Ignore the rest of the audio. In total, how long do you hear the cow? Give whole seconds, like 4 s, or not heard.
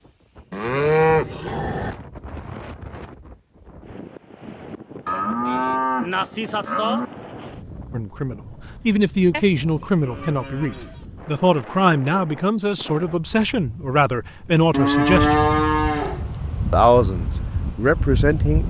7 s.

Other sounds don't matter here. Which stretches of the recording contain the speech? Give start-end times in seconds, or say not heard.
7.9-15.4, 16.7-18.6.